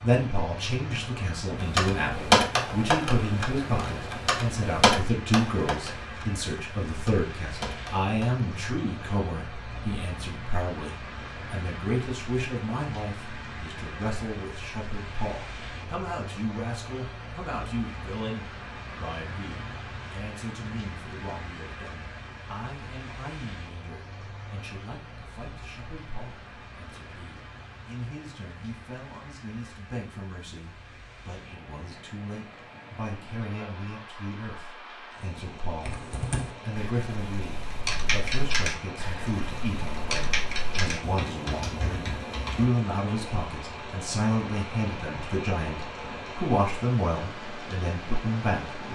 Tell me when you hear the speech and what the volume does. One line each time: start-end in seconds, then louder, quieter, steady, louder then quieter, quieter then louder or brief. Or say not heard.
0.0-48.8 quieter then louder.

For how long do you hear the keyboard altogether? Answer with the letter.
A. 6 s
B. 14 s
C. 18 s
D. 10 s
B.